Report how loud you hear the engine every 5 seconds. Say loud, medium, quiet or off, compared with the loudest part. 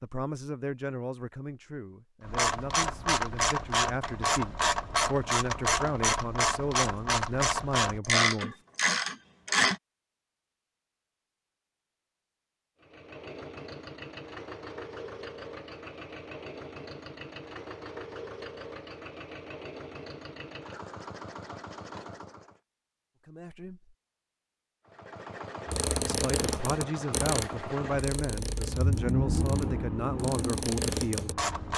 off, off, medium, medium, medium, loud, loud.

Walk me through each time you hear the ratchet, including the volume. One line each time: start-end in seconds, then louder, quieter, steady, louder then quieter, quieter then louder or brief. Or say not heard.
2.2-9.8 steady
25.6-31.7 quieter then louder.